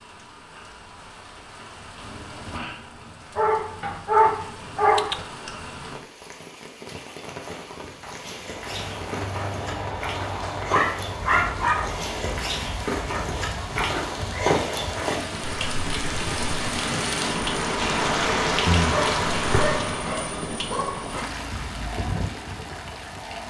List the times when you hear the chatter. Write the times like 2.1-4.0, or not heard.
not heard.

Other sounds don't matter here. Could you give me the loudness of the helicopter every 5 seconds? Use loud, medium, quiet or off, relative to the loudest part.
off, loud, loud, loud, loud.